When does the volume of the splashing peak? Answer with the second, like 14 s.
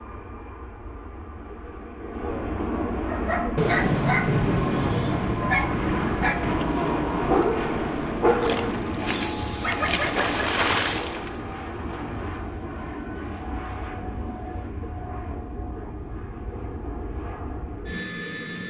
11 s.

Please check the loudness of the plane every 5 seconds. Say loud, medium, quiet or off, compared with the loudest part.
loud, loud, medium, medium.